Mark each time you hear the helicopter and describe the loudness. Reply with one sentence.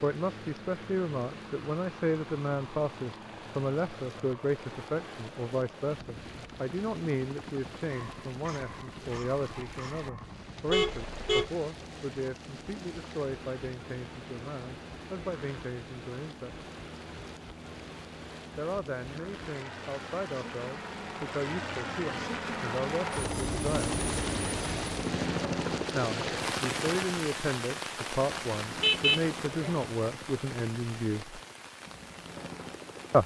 You can hear the helicopter from 0.0 to 33.2 s, getting louder then quieter.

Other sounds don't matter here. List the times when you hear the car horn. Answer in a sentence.
You can hear the car horn from 10.7 to 11.5 s and from 28.8 to 29.9 s.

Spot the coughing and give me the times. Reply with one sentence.
The coughing can't be heard in this clip.